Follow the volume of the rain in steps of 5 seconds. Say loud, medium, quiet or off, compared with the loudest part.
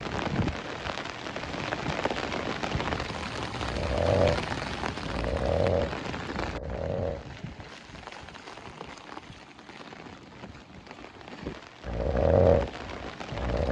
loud, medium, medium.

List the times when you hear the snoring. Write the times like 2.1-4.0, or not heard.
3.5-7.4, 11.8-13.6.